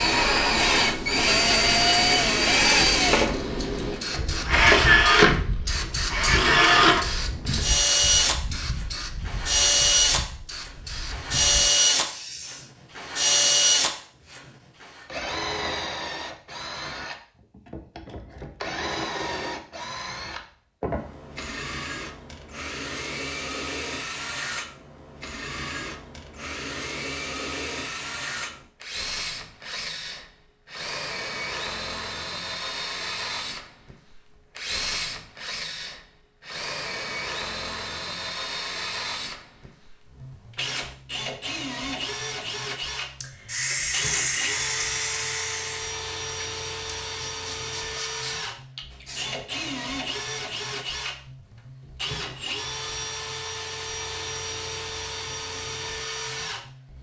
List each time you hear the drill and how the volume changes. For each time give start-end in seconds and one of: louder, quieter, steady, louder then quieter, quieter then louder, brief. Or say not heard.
0.0-56.9 quieter.